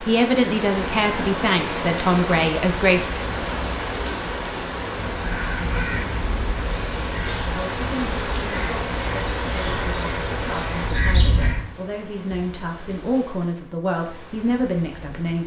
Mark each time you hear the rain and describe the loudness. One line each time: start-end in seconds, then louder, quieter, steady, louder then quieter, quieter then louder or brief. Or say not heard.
0.0-15.4 quieter.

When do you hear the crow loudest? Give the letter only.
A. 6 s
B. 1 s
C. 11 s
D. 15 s
C.